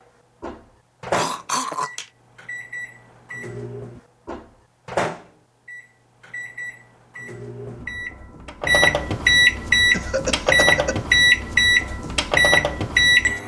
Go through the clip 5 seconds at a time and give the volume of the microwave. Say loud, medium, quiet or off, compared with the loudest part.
quiet, loud, loud.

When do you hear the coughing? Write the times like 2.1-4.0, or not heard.
1.1-2.0, 9.9-11.0.